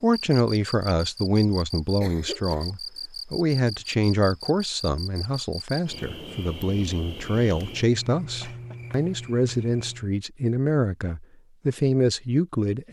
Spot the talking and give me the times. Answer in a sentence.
You can hear the talking from 0.0 to 12.8 s.